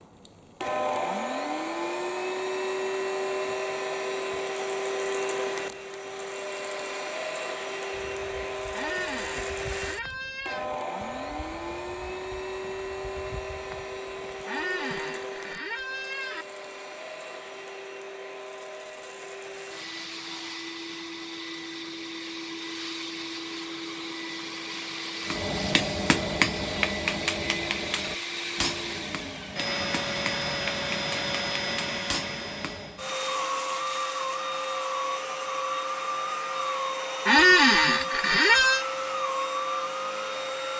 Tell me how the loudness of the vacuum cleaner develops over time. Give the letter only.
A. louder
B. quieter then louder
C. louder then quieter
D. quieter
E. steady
B.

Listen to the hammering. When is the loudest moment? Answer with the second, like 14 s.
26 s.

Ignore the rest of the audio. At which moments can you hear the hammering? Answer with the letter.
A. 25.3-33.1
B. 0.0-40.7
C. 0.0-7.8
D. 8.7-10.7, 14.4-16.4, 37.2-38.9
A.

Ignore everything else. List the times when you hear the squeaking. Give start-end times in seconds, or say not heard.
8.7-10.7, 14.4-16.4, 37.2-38.9.